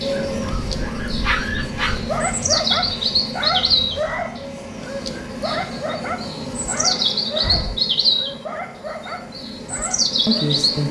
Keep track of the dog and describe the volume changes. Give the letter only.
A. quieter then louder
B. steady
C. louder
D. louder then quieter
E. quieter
E.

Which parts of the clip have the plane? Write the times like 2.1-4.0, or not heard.
0.0-10.8.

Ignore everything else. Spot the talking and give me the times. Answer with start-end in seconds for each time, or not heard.
10.2-10.8.